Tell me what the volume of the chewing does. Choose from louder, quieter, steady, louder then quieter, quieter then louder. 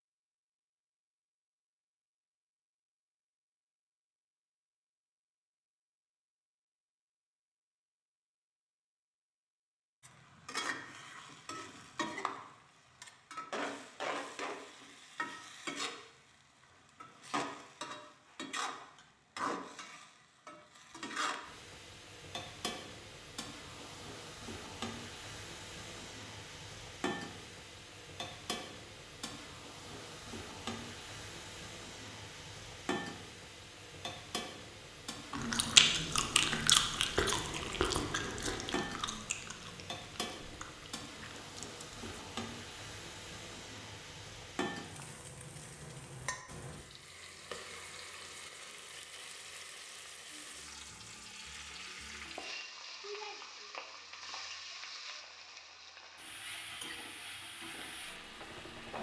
quieter.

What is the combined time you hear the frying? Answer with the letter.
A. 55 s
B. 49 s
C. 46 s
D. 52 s
B.